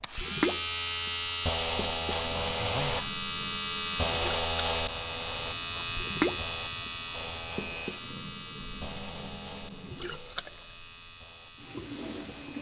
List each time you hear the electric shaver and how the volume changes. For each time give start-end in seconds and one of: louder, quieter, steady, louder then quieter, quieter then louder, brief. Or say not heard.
0.0-12.5 quieter.